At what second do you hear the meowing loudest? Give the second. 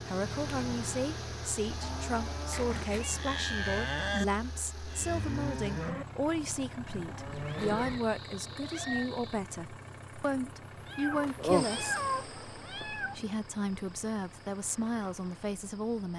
12 s.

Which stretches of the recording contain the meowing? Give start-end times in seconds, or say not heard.
2.5-3.5, 7.3-9.1, 10.8-13.2.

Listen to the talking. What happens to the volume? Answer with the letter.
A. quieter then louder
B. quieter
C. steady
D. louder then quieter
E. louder
C.